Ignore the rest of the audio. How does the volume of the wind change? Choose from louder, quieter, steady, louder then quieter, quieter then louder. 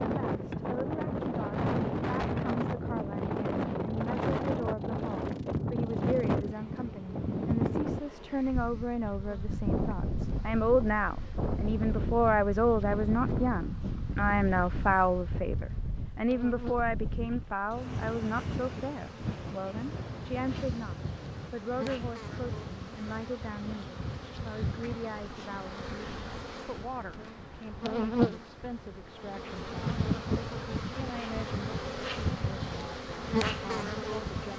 quieter.